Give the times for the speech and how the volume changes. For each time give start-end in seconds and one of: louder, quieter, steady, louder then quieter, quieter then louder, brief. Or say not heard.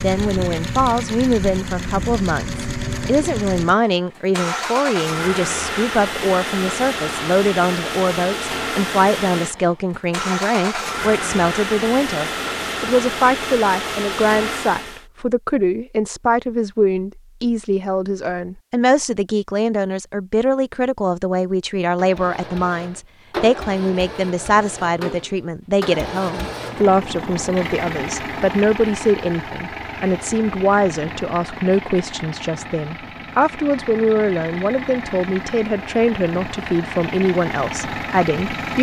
0.0-38.7 steady.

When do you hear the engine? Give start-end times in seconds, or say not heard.
0.0-15.1, 21.9-38.7.